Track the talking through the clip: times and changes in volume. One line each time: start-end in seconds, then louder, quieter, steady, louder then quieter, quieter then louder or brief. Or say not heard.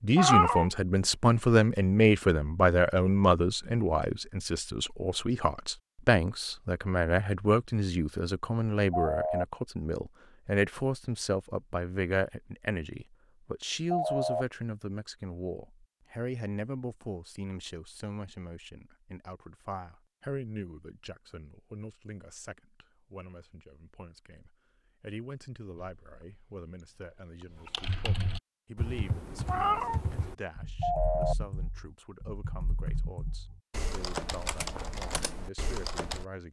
0.0-36.4 quieter.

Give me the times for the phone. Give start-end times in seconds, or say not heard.
8.9-9.4, 13.9-14.4, 30.8-31.4.